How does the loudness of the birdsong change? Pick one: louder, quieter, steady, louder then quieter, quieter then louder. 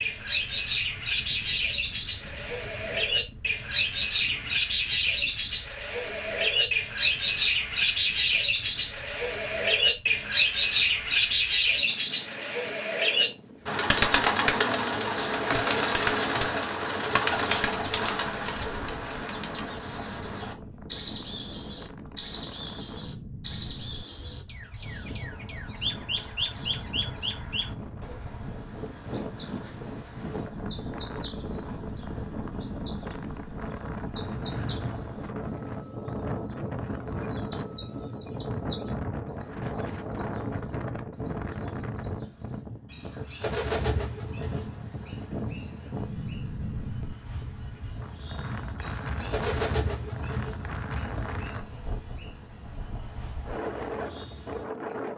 quieter.